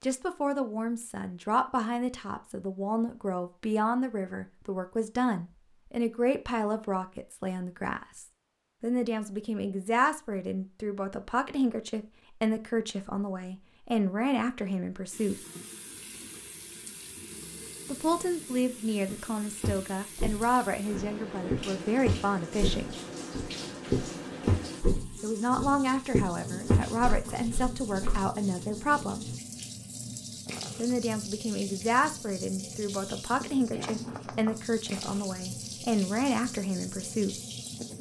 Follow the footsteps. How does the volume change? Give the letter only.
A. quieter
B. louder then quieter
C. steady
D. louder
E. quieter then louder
D.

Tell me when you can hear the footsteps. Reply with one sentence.
The footsteps can be heard from 19.1 to 28.2 s.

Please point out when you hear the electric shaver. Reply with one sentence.
You can't hear the electric shaver here.